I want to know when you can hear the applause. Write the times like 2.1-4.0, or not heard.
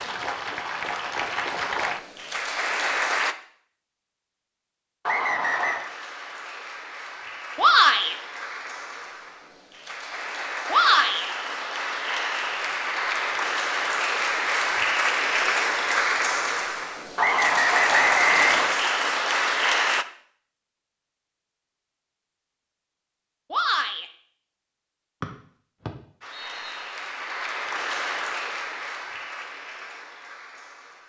0.0-3.4, 5.4-20.1, 26.2-31.0.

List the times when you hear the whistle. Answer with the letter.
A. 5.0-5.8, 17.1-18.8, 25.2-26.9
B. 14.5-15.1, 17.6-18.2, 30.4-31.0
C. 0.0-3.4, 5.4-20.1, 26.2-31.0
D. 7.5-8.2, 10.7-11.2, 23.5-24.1
A.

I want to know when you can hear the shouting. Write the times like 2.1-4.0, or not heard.
7.5-8.2, 10.7-11.2, 23.5-24.1.